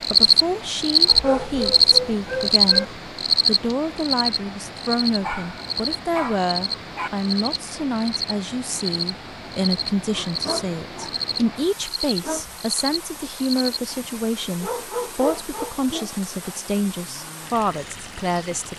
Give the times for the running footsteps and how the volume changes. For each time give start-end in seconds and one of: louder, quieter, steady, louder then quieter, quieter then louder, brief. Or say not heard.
not heard.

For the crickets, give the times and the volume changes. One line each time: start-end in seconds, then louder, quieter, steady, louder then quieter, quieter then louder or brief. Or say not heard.
0.0-13.8 quieter.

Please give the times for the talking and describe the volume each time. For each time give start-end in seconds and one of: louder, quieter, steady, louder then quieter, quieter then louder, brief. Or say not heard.
0.1-18.7 steady.